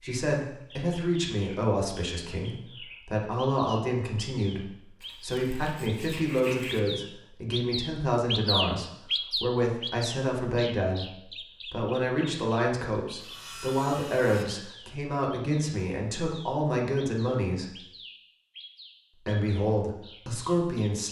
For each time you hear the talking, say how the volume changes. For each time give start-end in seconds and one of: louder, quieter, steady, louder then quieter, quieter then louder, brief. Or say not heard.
0.0-17.8 steady
19.2-21.0 brief.